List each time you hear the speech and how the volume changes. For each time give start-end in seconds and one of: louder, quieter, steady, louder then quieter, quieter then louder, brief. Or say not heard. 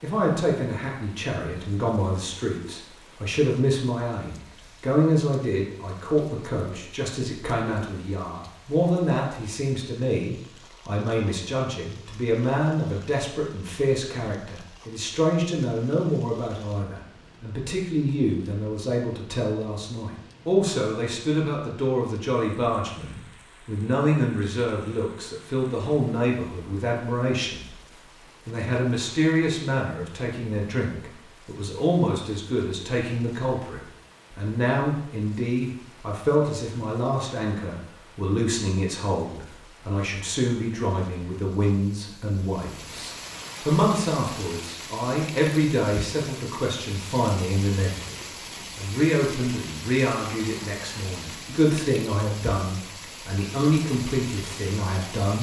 0.0-27.8 steady
28.4-55.3 steady.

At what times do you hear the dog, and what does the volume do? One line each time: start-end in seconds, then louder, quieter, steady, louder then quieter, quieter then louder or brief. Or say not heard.
not heard.